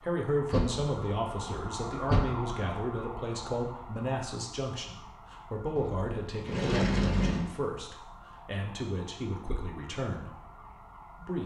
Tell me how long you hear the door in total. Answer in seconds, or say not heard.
4 s.